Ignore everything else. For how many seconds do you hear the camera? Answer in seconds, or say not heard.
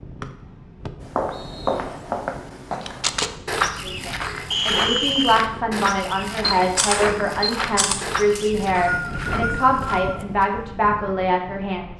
2 s.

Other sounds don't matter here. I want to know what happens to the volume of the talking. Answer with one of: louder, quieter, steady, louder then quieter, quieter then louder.
steady.